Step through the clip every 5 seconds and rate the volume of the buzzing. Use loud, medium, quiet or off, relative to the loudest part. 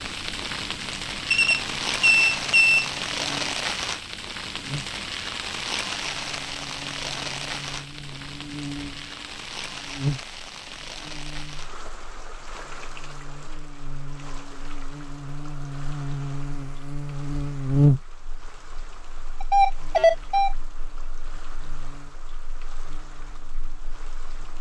quiet, quiet, medium, loud, quiet.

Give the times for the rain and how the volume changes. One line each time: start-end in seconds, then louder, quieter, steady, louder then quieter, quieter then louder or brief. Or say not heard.
0.0-24.5 quieter.